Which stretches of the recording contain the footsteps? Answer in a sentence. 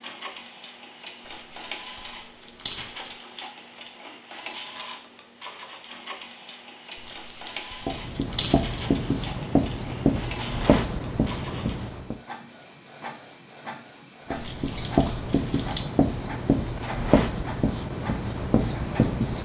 You can't hear the footsteps here.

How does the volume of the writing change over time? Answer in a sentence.
The loudness of the writing stays about the same.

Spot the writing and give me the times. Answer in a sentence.
The writing can be heard from 7.8 to 12.2 s and from 14.3 to 19.3 s.